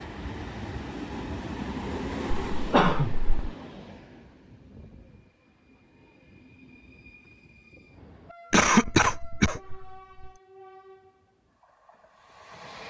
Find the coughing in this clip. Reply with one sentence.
The coughing can be heard from 2.5 to 3.5 s and from 8.5 to 10.3 s.